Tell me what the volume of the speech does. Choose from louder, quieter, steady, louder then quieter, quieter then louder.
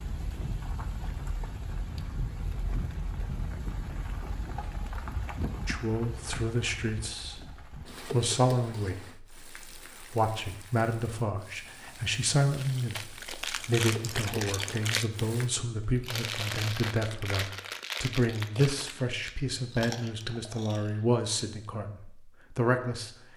steady.